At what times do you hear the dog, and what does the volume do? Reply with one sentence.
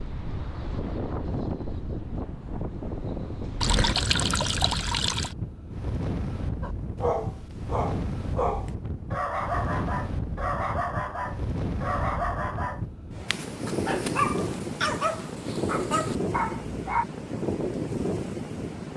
You can hear the dog from 6.6 to 17.1 s, at a steady volume.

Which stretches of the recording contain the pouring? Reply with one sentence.
You can hear the pouring from 3.6 to 5.3 s.